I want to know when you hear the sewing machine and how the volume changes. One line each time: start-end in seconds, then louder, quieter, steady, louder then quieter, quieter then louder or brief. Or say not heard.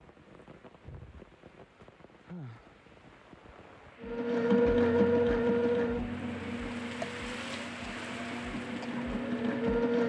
4.0-10.0 quieter then louder.